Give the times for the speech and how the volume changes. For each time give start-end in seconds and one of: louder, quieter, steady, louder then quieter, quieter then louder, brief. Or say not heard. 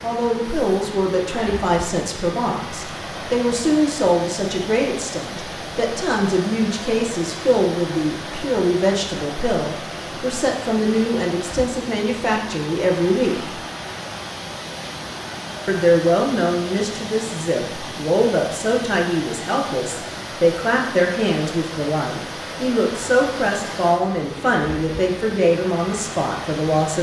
0.0-13.6 steady
15.7-26.9 steady.